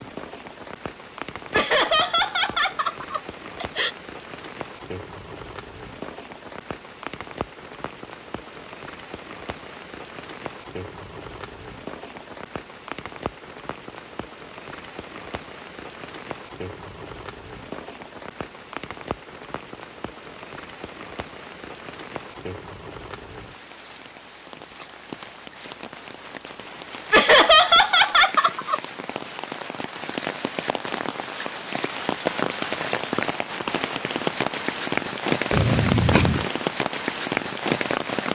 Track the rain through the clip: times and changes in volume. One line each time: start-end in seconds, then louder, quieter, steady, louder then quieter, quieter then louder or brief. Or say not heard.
0.0-38.2 louder.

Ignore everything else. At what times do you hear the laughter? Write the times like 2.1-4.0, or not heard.
1.5-3.9, 27.1-28.8.